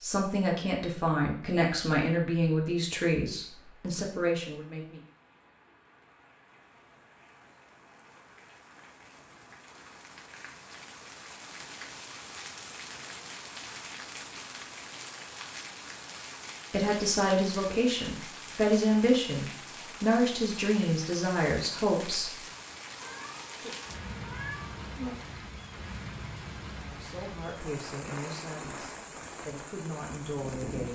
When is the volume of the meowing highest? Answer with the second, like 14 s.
25 s.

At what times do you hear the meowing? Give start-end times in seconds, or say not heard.
22.9-25.1.